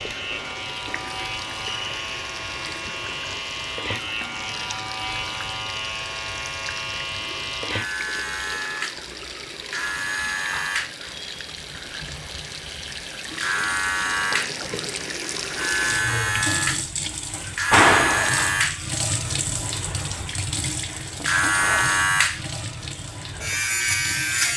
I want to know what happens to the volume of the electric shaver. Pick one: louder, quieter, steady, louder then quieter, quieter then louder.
louder.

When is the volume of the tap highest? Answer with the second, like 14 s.
18 s.